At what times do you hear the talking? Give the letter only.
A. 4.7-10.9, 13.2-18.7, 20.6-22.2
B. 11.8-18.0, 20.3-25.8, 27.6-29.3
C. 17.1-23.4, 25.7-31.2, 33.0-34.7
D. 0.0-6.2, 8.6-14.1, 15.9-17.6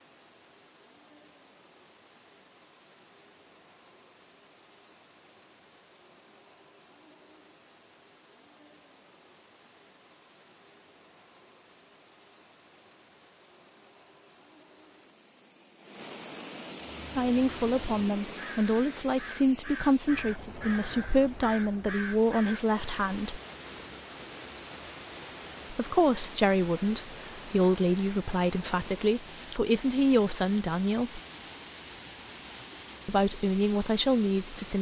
C.